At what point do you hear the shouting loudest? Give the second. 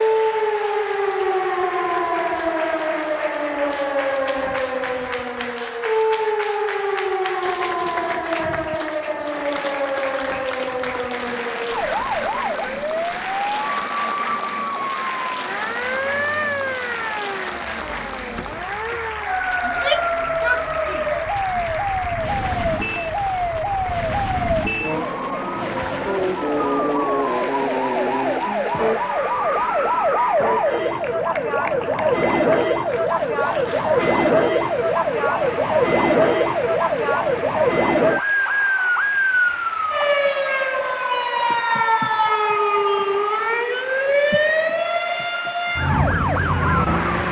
20 s.